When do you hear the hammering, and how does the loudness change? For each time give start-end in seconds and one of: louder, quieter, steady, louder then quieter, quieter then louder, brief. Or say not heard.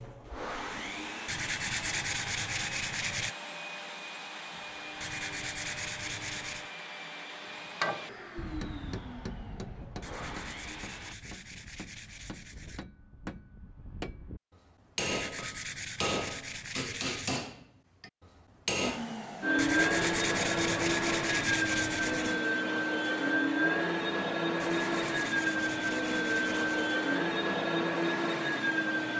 7.5-19.1 quieter then louder.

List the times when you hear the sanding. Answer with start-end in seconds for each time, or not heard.
1.2-3.4, 5.0-6.7, 10.0-12.8, 15.0-17.4, 19.6-22.4, 24.6-26.9.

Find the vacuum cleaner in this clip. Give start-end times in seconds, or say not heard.
0.0-11.2, 18.8-29.1.